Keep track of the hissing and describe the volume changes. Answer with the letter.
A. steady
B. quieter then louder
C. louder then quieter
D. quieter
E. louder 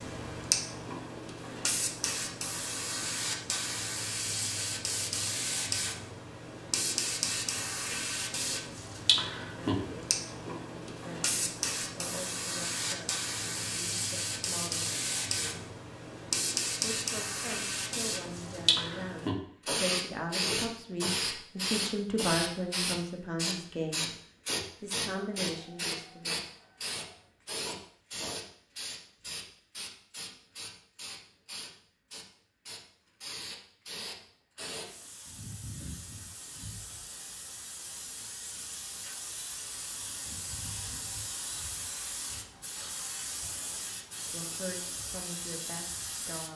D.